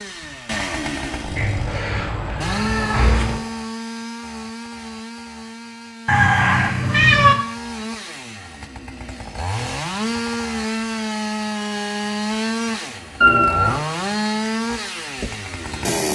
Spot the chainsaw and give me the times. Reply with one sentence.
The chainsaw can be heard from 0.0 to 16.0 s.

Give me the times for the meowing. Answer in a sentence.
You can hear the meowing from 1.4 to 3.4 s, from 6.0 to 7.3 s and from 13.2 to 13.8 s.